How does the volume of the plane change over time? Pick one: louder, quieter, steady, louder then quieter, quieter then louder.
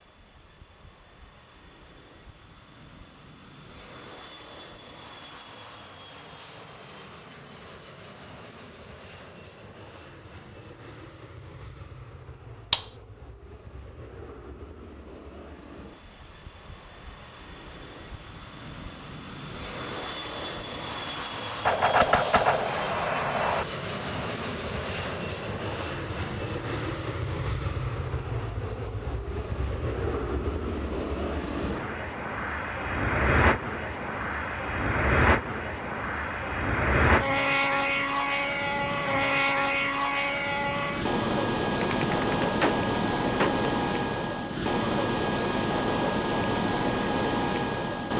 louder.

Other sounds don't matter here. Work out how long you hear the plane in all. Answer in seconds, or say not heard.
48 s.